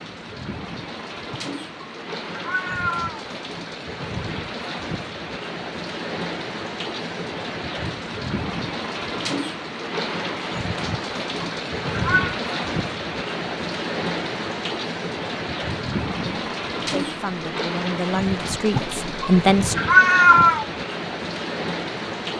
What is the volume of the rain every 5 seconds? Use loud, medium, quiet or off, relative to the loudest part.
medium, loud, loud, loud, loud.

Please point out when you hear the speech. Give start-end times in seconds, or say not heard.
16.2-19.8.